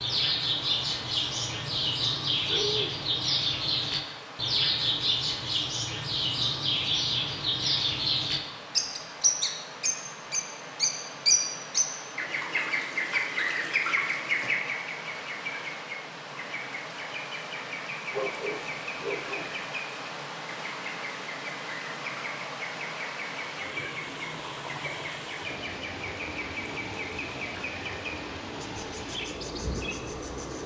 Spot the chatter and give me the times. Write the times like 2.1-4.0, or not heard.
not heard.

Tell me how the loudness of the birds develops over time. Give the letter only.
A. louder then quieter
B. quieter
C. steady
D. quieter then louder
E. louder
B.